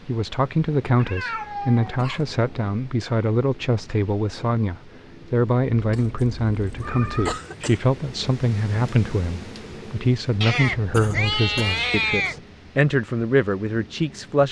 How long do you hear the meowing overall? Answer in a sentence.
You can hear the meowing for 5 seconds altogether.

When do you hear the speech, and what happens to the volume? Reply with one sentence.
You can hear the speech from 0.1 to 14.4 s, at a steady volume.